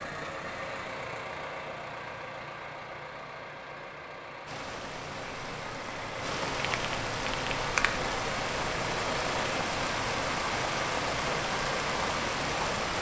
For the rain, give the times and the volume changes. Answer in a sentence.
The rain can be heard from 4.5 to 12.9 s, getting louder.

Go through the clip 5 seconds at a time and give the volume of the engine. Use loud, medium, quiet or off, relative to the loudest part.
medium, loud, loud.